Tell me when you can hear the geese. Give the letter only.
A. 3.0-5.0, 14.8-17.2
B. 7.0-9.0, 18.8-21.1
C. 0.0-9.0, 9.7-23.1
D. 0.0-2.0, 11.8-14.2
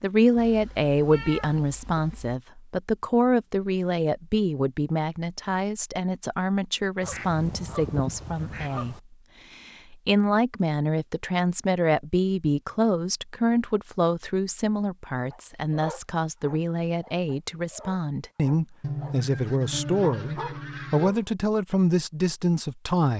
B.